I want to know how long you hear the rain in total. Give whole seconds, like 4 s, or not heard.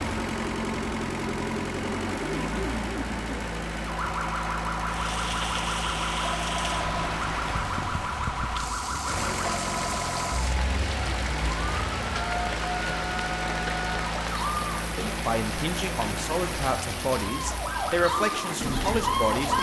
15 s.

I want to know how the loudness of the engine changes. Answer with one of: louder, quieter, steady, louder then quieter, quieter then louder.
steady.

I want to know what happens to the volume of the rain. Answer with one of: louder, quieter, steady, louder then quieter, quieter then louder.
steady.